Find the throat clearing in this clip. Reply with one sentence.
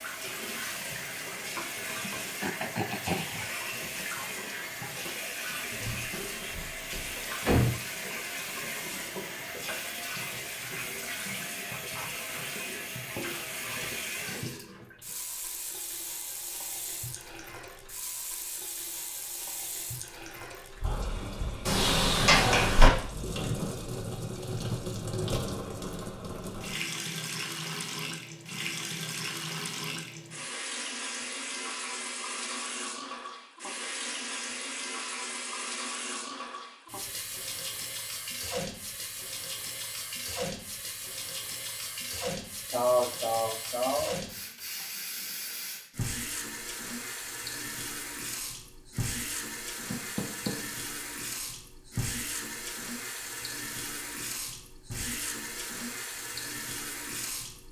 The throat clearing can be heard from 2.4 to 3.5 s and from 42.7 to 44.1 s.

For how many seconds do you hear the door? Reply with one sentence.
You can hear the door for 4 seconds altogether.